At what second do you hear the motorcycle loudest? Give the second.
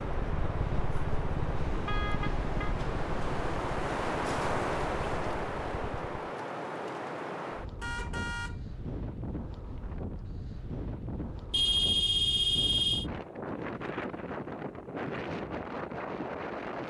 1 s.